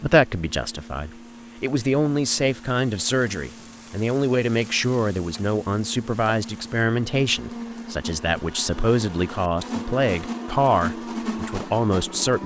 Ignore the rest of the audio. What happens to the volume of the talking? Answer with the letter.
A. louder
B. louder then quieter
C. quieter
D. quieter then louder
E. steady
E.